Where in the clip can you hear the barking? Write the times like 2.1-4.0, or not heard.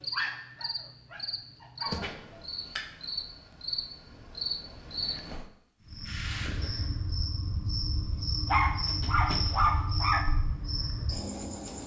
0.1-2.1, 8.5-10.3.